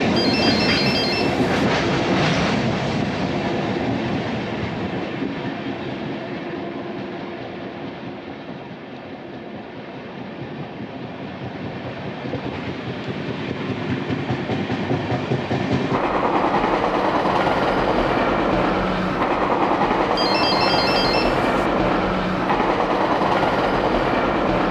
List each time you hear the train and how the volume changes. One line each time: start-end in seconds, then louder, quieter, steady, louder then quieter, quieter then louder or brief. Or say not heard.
0.0-24.6 quieter then louder.